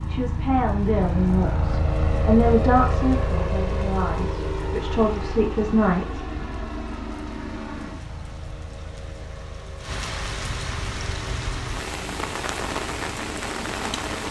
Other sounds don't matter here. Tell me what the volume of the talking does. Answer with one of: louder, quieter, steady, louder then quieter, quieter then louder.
quieter then louder.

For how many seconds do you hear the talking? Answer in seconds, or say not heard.
6 s.